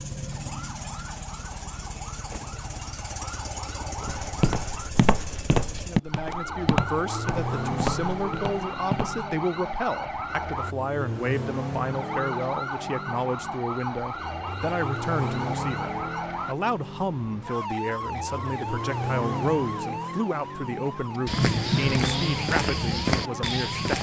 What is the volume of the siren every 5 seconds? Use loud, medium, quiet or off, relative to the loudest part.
medium, loud, loud, loud, medium.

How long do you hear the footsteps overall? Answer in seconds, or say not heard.
8 s.